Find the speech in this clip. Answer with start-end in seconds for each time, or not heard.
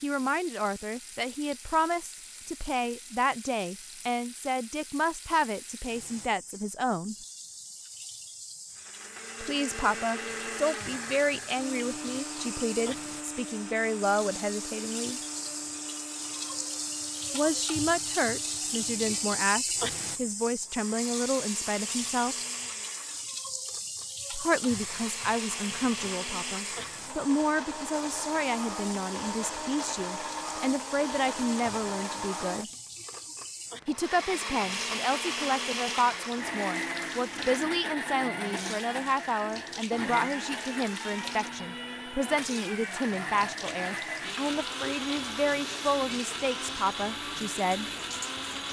0.0-7.2, 9.4-15.2, 17.3-22.4, 24.3-32.7, 33.9-47.9.